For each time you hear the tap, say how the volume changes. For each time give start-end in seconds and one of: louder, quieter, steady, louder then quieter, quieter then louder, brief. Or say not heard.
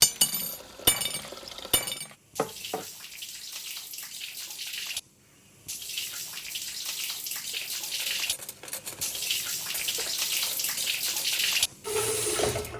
0.0-12.7 louder.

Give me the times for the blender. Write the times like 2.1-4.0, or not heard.
not heard.